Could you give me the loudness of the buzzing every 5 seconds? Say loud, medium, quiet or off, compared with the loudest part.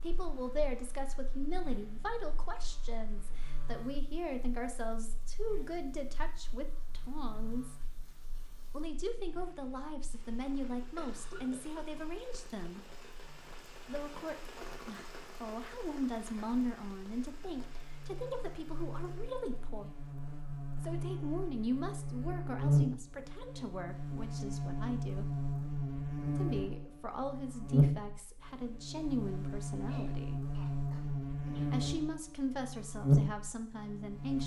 quiet, quiet, quiet, quiet, loud, loud, loud.